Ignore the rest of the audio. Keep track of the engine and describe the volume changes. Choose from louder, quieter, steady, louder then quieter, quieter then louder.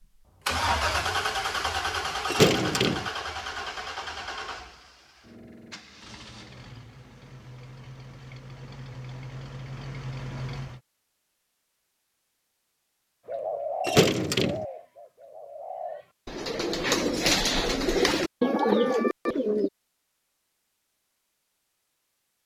quieter then louder.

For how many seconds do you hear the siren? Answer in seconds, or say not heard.
not heard.